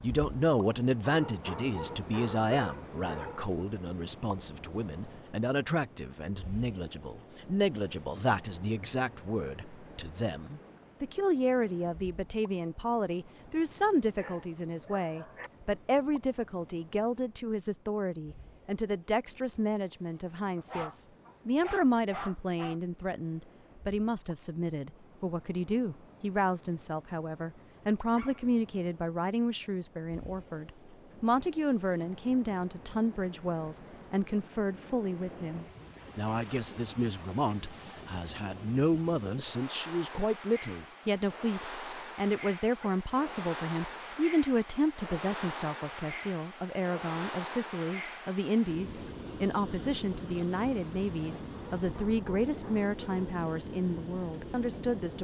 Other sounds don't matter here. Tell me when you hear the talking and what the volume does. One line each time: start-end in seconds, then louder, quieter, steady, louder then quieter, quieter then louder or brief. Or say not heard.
0.0-55.1 steady.